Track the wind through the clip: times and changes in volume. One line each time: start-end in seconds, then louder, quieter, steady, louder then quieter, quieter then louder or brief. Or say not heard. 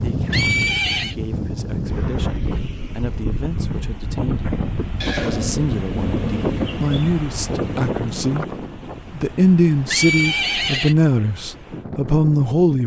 0.0-12.8 quieter.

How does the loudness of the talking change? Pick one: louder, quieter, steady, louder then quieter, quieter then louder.
louder.